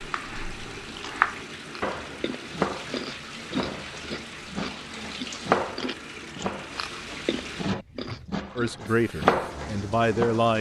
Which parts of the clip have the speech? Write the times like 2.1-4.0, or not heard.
8.6-10.5.